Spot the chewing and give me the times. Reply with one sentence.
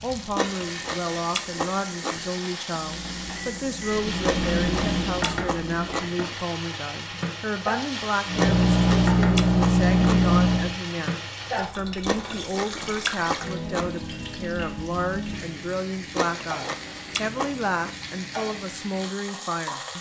The chewing can be heard from 0.3 to 2.3 s, from 4.2 to 6.2 s, from 8.3 to 10.2 s, from 12.1 to 13.9 s and from 16.1 to 17.9 s.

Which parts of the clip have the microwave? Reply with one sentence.
You can hear the microwave from 2.7 to 6.1 s and from 8.2 to 10.8 s.